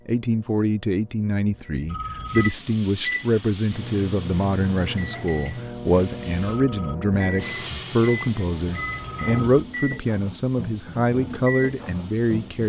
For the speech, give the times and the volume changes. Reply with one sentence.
The speech can be heard from 0.1 to 12.6 s, at a steady volume.